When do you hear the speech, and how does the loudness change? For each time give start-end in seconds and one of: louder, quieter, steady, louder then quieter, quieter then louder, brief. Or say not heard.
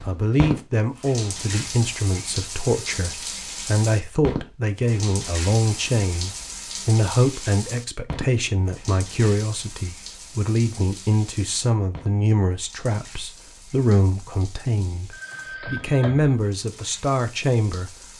0.1-17.9 steady.